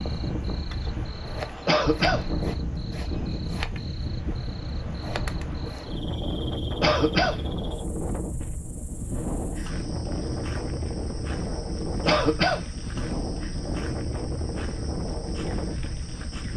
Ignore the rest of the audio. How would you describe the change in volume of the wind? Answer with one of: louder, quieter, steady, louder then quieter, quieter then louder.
steady.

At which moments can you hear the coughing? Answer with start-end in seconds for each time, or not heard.
1.6-2.2, 6.8-7.4, 12.1-12.7.